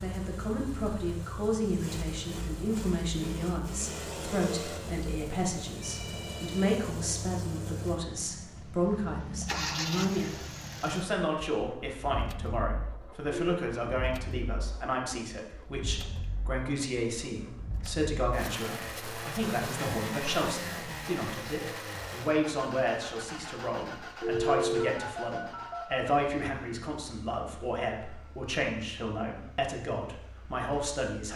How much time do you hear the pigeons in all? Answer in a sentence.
You can't hear the pigeons here.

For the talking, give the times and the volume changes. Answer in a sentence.
The talking can be heard from 0.0 to 31.3 s, at a steady volume.